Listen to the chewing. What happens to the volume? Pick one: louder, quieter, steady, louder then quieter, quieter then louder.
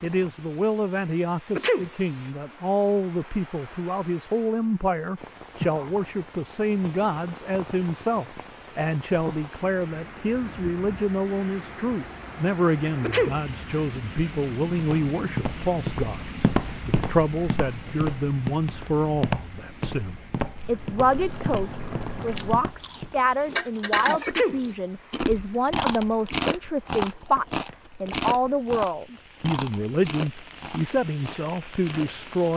louder then quieter.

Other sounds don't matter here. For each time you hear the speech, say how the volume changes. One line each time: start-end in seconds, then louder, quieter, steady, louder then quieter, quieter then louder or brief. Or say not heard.
0.0-32.5 steady.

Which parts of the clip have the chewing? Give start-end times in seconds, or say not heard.
20.6-32.5.